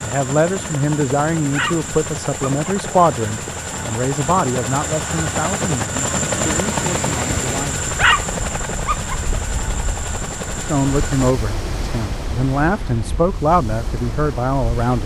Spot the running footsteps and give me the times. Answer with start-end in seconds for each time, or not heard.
not heard.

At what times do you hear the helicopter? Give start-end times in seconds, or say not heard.
0.0-11.3.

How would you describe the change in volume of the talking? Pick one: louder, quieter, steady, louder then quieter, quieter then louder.
quieter then louder.